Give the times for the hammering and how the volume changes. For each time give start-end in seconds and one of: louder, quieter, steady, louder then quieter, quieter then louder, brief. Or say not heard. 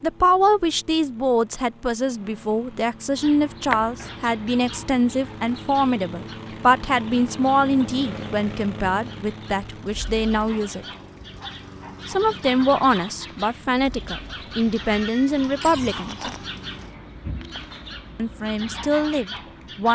not heard.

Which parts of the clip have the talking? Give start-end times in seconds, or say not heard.
0.0-10.8, 12.1-16.2, 18.1-19.9.